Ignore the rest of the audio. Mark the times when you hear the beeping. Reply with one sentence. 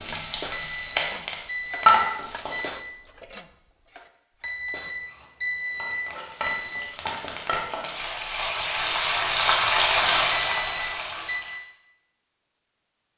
The beeping can be heard from 0.5 to 2.9 s, from 4.4 to 6.8 s and from 10.5 to 11.6 s.